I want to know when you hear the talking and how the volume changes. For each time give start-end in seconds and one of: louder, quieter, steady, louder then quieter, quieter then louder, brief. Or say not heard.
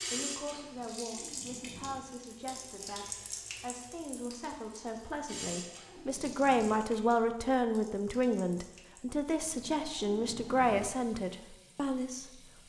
0.0-12.6 louder.